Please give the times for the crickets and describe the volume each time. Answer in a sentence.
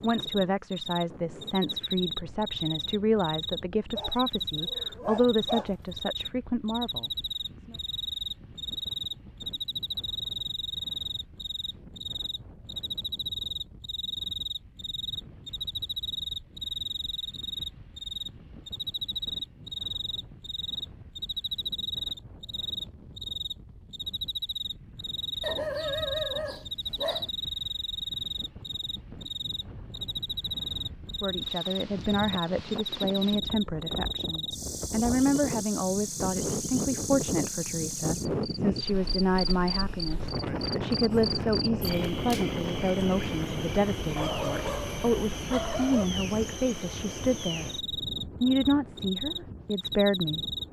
The crickets can be heard from 0.0 to 50.6 s, at a steady volume.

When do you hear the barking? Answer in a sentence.
You can hear the barking from 4.0 to 5.8 s, from 25.4 to 27.3 s and from 44.1 to 46.0 s.